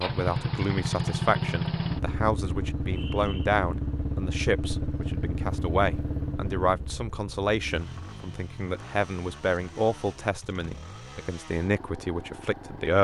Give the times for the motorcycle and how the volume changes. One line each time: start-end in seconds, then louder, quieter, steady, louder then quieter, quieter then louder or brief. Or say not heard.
0.0-12.9 quieter.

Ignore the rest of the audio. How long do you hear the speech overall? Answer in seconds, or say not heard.
13 s.